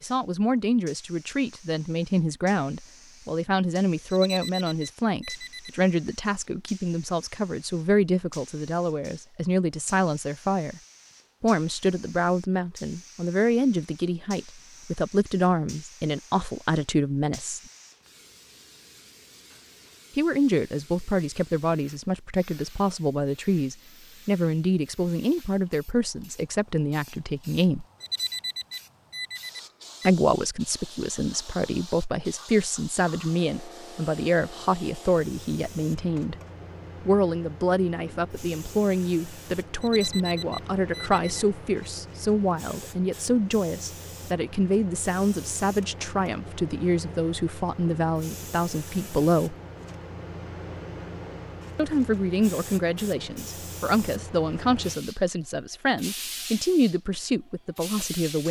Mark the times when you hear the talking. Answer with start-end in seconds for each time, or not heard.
0.0-10.8, 11.4-17.6, 20.1-27.9, 30.1-36.4, 37.0-49.5, 51.8-58.4.